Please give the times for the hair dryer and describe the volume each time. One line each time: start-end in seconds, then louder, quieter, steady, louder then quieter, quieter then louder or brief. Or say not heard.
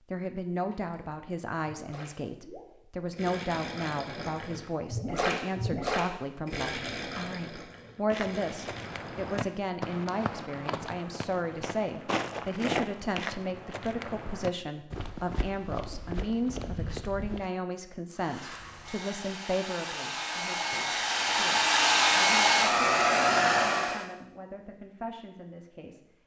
18.1-24.1 louder.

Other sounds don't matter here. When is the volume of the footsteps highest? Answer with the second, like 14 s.
13 s.